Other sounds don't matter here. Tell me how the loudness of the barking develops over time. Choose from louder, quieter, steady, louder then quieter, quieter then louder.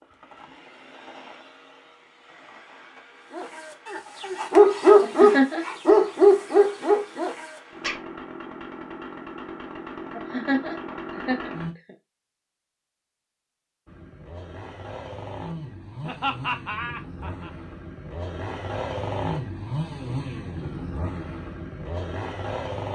louder then quieter.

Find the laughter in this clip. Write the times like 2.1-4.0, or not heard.
5.0-5.7, 10.2-11.9, 16.0-17.5.